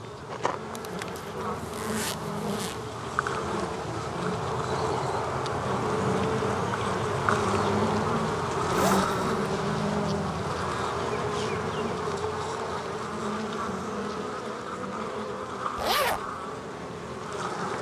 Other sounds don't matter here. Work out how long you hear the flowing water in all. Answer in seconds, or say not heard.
not heard.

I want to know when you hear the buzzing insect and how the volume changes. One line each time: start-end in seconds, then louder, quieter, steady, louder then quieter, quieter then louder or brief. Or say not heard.
0.0-17.7 louder then quieter.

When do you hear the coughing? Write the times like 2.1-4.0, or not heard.
not heard.